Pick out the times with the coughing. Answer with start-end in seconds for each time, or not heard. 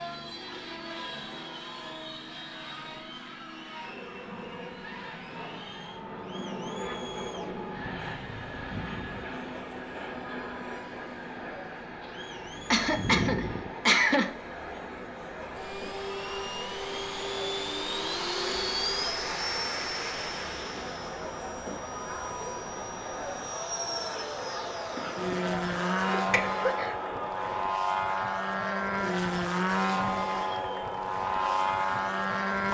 12.7-14.3, 24.9-26.9.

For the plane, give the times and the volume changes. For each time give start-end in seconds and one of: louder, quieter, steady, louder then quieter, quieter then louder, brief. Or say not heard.
0.0-32.6 louder.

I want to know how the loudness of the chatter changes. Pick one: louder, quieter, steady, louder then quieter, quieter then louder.
louder.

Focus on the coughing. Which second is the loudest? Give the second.
14 s.